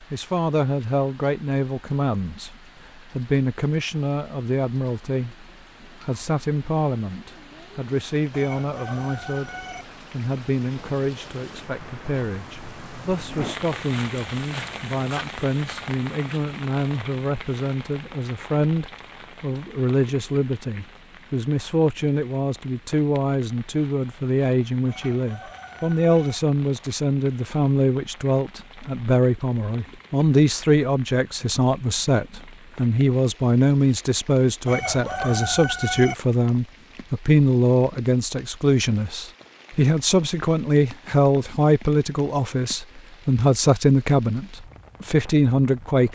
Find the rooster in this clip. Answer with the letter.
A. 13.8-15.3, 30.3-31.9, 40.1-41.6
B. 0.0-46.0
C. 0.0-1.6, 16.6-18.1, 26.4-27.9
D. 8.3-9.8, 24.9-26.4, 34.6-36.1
D.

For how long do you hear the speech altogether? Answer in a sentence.
You can hear the speech for 46 seconds altogether.